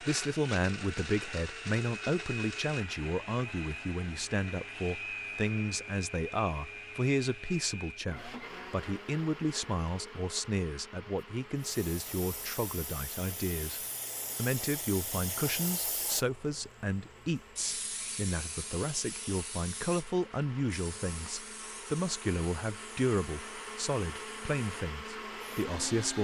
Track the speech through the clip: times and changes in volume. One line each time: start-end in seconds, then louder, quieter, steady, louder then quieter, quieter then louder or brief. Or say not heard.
0.0-26.2 steady.